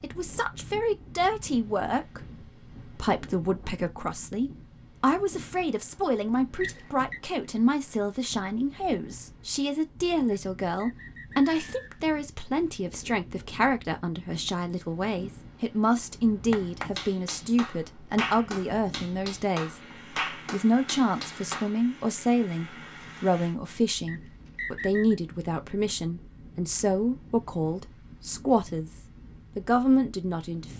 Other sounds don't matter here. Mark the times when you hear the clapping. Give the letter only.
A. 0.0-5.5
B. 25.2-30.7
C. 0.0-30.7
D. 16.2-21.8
D.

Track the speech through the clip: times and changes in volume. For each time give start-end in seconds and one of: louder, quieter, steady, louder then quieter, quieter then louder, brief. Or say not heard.
0.0-30.7 steady.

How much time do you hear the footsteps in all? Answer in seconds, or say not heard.
not heard.